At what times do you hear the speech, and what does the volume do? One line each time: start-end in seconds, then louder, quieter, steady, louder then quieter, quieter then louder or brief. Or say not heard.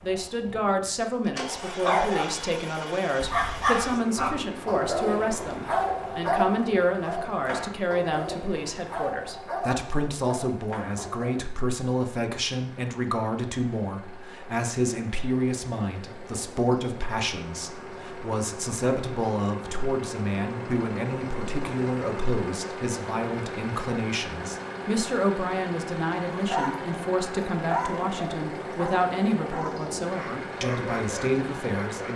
0.0-32.1 steady.